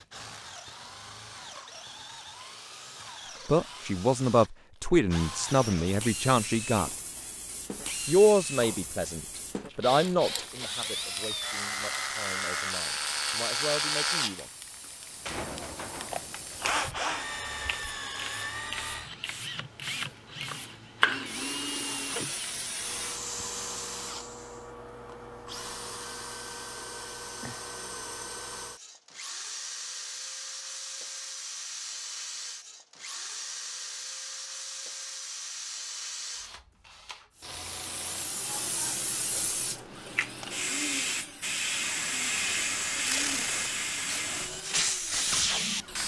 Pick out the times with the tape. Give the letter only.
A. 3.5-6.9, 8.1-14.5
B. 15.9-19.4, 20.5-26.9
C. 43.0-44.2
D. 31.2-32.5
C.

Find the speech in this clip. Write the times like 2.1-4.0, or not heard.
3.5-6.9, 8.1-14.5.